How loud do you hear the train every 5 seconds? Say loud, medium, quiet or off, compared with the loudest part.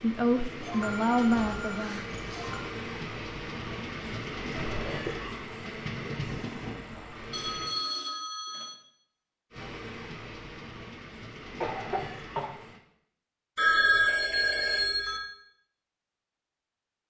loud, loud, medium, off.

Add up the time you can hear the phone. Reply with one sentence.
You can hear the phone for 5 seconds altogether.